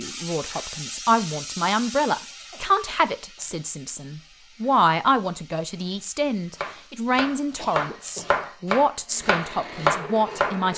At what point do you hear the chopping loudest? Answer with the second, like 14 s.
10 s.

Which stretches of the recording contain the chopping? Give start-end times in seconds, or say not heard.
6.5-10.6.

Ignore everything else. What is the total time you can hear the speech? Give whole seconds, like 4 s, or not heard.
11 s.